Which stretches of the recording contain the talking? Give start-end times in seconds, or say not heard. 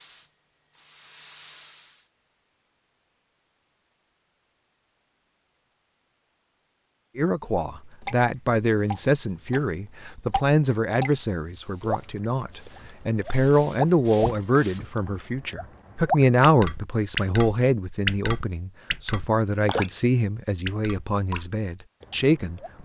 7.2-22.8.